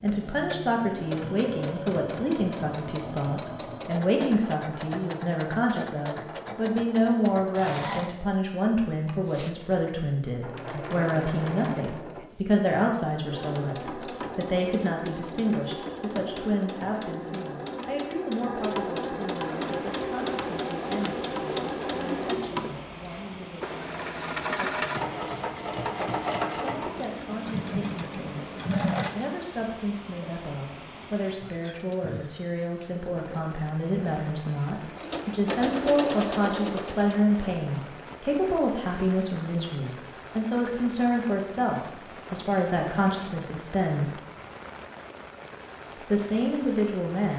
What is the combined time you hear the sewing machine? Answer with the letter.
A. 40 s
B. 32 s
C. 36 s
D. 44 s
B.